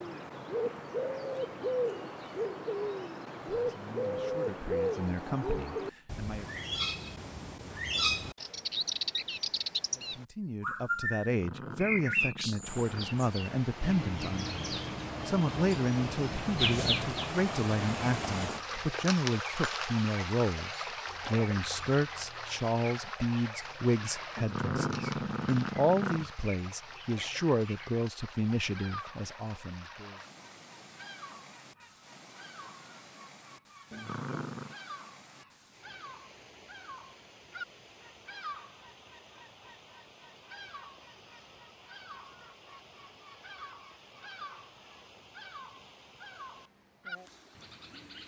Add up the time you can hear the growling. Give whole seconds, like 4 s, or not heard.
5 s.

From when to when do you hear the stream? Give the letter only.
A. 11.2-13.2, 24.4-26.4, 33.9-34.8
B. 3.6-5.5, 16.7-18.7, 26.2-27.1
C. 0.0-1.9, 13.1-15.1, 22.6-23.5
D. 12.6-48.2
D.